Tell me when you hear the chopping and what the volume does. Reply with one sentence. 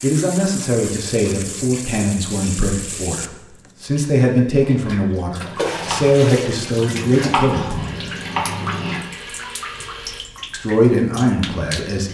The chopping can be heard from 4.6 to 9.0 s, getting louder.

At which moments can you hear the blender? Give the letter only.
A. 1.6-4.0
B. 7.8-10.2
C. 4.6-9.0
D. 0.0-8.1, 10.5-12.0
B.